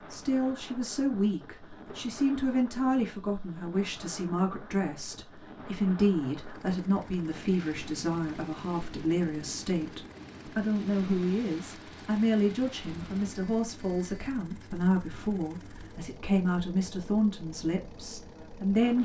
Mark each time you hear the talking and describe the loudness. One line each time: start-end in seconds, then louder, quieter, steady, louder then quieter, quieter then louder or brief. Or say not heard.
0.0-18.9 steady.